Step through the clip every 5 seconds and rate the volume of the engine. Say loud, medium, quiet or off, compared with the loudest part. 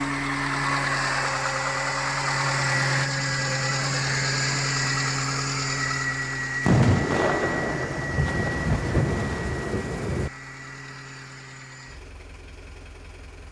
loud, medium, quiet.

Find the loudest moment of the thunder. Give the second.
7 s.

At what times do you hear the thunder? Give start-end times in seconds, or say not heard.
6.6-10.3.